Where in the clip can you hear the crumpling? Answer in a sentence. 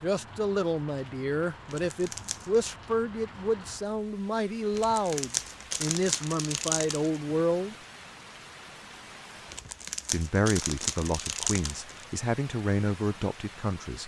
You can hear the crumpling from 1.6 to 2.6 s, from 4.7 to 7.2 s and from 9.4 to 12.1 s.